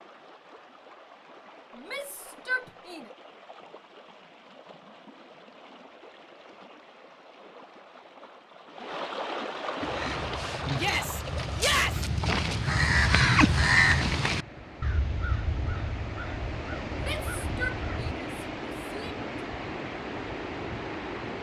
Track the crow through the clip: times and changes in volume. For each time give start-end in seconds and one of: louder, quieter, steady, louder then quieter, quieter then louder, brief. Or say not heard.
9.8-18.1 louder then quieter.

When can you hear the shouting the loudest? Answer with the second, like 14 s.
12 s.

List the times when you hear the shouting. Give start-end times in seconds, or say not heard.
1.8-3.1, 10.8-12.1, 17.0-19.2.